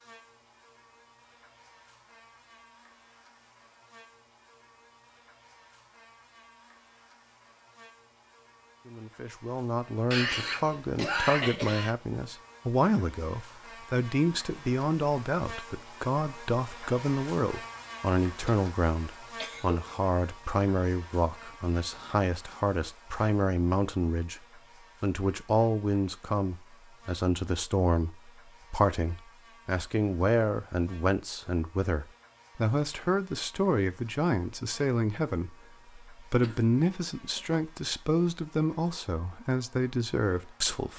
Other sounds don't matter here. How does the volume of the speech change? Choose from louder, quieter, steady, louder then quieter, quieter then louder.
steady.